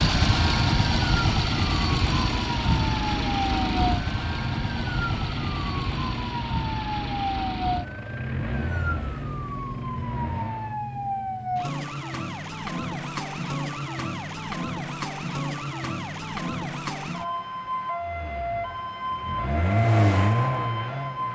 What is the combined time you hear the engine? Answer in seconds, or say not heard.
14 s.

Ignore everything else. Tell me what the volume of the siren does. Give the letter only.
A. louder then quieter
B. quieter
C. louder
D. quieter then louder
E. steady
E.